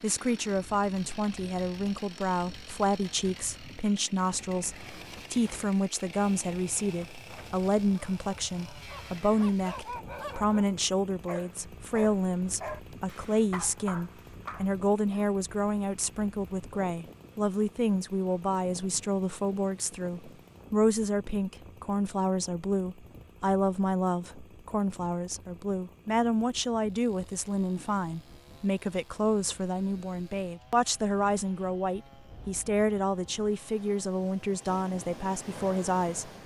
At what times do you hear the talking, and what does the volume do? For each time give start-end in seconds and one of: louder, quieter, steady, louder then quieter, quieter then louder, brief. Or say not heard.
0.0-36.3 steady.